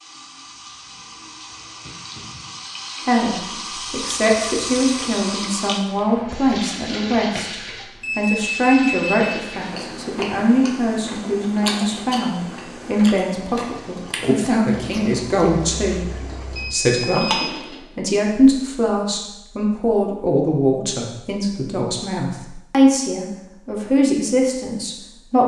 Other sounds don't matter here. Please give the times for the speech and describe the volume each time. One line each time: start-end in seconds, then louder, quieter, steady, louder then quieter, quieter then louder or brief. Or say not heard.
3.0-25.4 steady.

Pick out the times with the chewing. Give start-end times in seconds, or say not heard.
9.5-17.8.